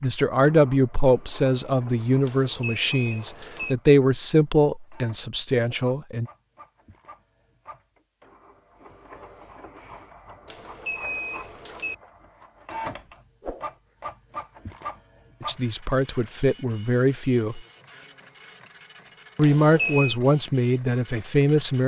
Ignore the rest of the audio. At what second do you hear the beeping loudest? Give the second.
20 s.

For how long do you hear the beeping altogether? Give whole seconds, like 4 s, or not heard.
4 s.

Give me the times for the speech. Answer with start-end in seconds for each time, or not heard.
0.0-6.3, 15.4-17.6, 19.4-21.8.